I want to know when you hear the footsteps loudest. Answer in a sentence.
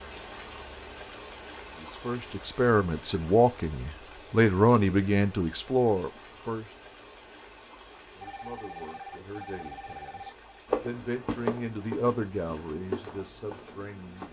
The loudest moment of the footsteps is at 11 seconds.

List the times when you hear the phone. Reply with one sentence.
The phone can be heard from 8.2 to 10.6 s.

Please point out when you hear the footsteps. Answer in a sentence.
You can hear the footsteps from 10.7 to 14.2 s.